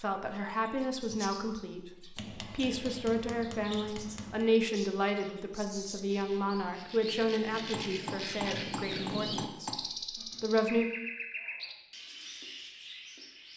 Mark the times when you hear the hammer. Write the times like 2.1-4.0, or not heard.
2.1-4.5, 7.7-9.8.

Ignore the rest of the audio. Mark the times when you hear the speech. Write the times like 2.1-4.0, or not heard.
0.0-9.8, 10.4-10.8.